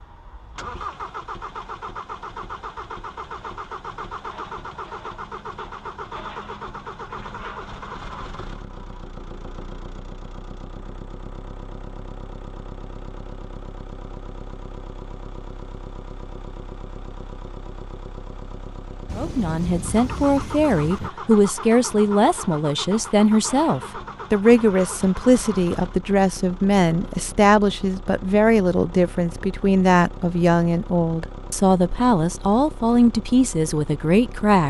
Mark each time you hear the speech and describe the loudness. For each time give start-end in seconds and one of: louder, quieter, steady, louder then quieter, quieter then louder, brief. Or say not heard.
19.1-34.6 steady.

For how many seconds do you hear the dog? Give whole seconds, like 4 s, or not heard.
not heard.